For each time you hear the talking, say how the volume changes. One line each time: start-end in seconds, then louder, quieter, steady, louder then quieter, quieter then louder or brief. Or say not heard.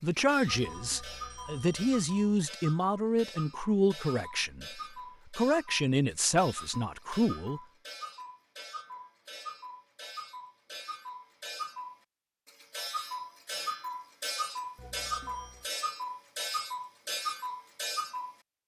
0.0-7.6 steady.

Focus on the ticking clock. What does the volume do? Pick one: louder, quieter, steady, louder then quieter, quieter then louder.
louder.